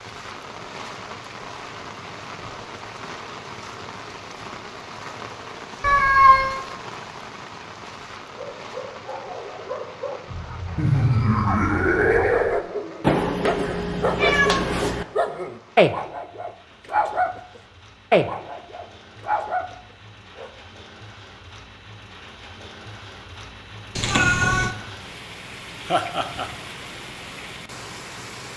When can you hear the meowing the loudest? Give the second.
6 s.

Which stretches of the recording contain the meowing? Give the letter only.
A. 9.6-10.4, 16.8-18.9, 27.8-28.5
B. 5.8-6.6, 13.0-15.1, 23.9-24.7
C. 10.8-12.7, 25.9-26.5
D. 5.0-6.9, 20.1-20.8
B.